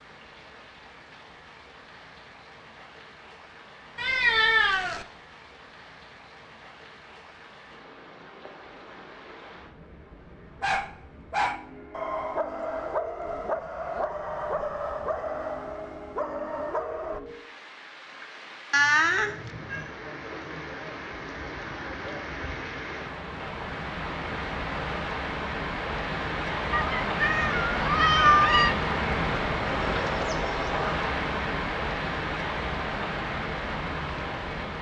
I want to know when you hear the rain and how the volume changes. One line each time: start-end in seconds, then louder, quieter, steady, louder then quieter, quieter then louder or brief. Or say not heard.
0.0-34.7 louder.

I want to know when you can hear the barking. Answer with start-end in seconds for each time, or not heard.
10.6-17.2.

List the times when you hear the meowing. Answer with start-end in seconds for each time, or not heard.
4.0-5.0, 18.7-19.9, 26.7-28.8.